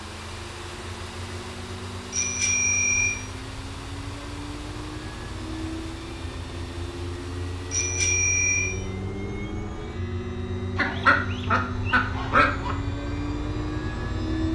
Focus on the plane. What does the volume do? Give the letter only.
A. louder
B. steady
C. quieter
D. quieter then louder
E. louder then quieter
A.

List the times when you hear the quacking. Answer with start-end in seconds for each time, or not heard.
10.8-12.8.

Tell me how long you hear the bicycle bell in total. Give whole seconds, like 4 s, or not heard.
2 s.